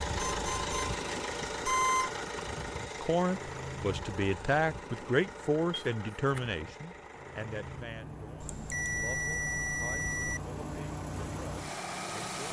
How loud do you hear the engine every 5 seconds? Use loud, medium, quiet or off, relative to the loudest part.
loud, medium, loud.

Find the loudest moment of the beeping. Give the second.
2 s.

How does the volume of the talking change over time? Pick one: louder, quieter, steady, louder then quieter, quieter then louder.
quieter.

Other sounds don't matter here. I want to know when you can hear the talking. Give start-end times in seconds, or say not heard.
3.0-12.4.